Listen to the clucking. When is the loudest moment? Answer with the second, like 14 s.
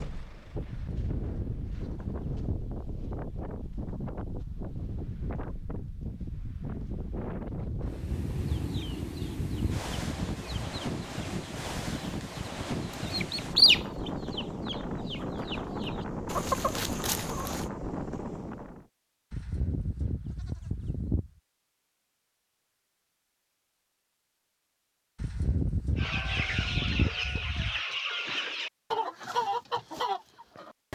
14 s.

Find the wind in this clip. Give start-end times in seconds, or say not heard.
0.0-18.9.